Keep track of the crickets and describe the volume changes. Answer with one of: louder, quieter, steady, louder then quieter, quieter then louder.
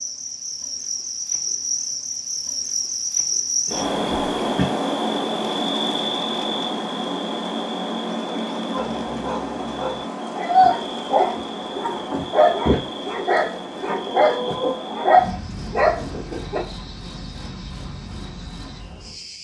quieter.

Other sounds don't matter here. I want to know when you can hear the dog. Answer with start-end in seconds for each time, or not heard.
8.7-16.6.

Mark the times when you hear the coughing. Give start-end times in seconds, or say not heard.
3.6-4.7.